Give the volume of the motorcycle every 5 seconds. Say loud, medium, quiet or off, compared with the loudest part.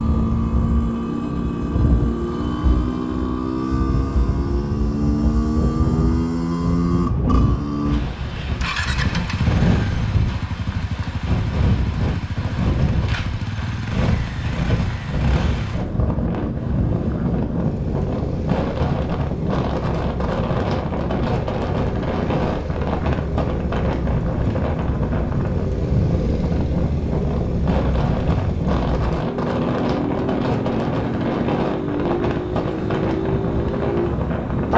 loud, loud, medium, medium, medium, loud, loud.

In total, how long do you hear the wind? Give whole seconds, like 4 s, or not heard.
35 s.